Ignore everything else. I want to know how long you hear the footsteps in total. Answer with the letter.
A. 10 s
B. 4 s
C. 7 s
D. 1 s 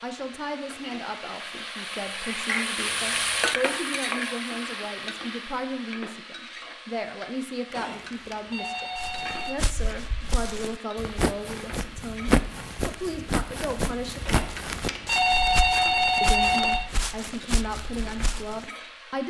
A.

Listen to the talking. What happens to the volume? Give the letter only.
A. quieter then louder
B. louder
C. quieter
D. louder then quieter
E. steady
E.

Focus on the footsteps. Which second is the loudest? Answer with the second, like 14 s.
12 s.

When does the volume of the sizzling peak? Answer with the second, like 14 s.
3 s.